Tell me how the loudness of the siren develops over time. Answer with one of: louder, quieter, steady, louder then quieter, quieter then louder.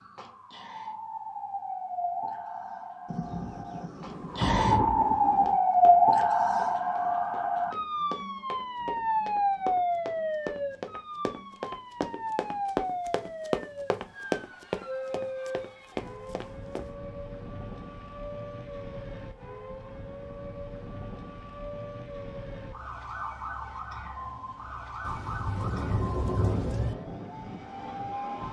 quieter.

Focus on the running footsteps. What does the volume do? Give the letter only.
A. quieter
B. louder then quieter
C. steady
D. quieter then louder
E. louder
E.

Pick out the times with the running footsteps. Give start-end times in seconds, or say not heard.
5.3-16.9.